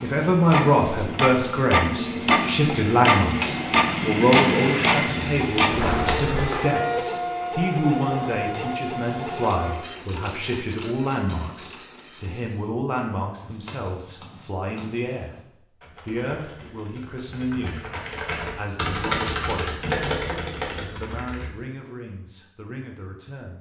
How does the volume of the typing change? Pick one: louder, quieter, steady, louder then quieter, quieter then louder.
louder.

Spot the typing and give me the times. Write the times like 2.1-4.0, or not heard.
13.4-21.5.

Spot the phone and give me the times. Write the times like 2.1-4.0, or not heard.
5.7-6.5.